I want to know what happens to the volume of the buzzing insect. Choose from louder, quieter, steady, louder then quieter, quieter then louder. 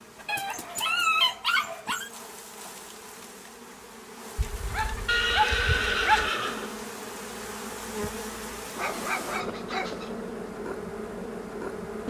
louder.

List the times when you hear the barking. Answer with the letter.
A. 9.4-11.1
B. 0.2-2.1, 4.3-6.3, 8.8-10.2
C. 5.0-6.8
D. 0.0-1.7
B.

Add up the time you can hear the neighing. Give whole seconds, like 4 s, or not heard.
2 s.